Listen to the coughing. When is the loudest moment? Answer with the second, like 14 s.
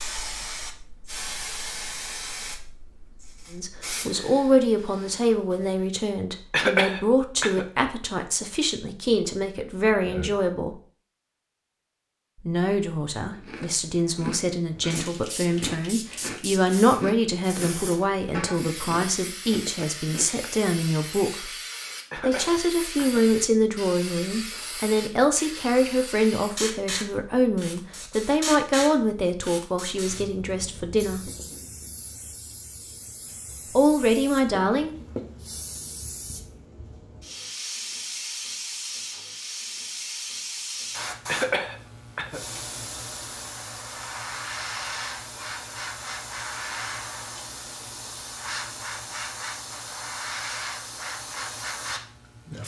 7 s.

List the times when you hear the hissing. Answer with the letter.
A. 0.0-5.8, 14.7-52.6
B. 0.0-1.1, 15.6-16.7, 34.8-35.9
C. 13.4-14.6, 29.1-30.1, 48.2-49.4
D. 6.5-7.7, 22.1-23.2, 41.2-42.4
A.